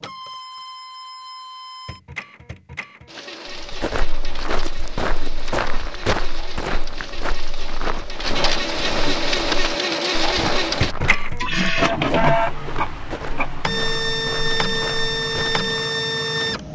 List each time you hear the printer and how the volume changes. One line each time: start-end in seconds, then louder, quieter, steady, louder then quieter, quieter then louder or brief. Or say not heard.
0.0-16.7 louder.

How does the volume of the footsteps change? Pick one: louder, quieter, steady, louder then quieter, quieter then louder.
quieter.